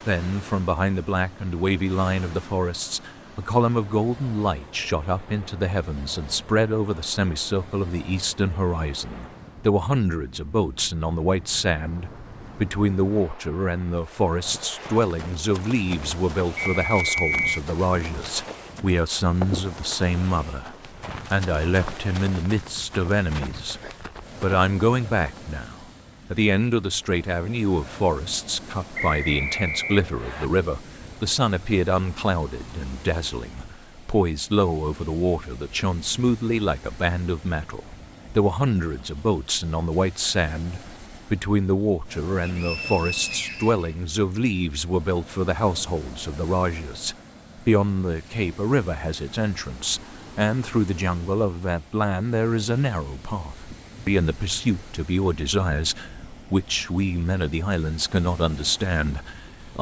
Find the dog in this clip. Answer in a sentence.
The dog can't be heard in this clip.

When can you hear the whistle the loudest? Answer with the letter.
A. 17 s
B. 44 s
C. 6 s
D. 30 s
A.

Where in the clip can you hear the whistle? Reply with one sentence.
The whistle can be heard from 16.8 to 17.6 s, from 28.9 to 30.5 s and from 42.4 to 44.4 s.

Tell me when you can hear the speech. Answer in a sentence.
The speech can be heard from 0.1 to 23.8 s and from 24.4 to 59.7 s.